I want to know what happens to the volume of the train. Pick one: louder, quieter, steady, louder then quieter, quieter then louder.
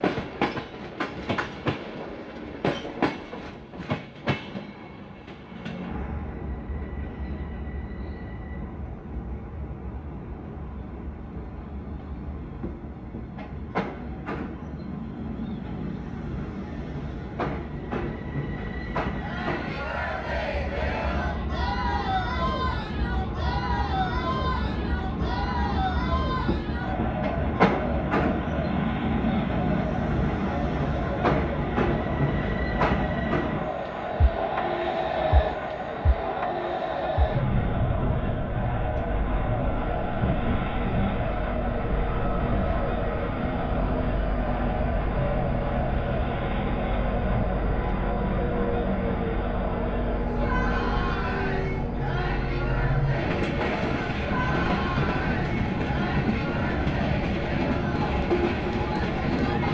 louder.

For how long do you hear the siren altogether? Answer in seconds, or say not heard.
not heard.